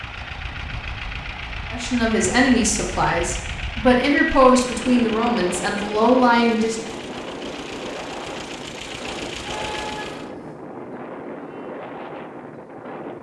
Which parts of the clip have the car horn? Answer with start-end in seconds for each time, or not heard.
9.3-10.6.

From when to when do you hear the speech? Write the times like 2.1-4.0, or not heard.
1.7-6.9.